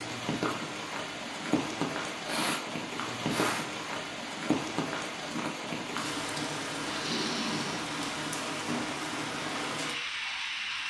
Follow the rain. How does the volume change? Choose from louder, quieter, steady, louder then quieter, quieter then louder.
steady.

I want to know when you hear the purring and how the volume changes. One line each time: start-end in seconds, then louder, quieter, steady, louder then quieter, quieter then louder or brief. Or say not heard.
not heard.